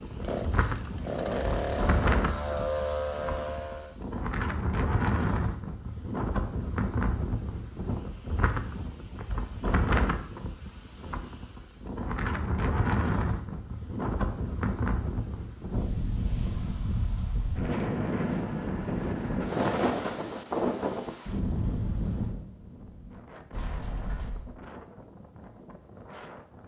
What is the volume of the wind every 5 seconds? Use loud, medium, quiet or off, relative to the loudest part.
loud, loud, loud, loud, loud, quiet.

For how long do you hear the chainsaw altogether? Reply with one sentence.
The chainsaw can be heard for 4 seconds in total.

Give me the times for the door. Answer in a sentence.
You can hear the door from 23.5 to 24.6 s.